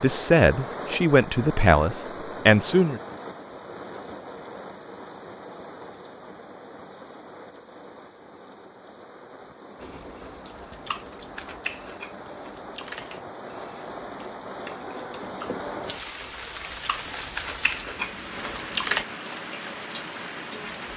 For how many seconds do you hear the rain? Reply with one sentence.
You can hear the rain for 21 seconds altogether.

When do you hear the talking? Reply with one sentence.
You can hear the talking from 0.0 to 3.0 s.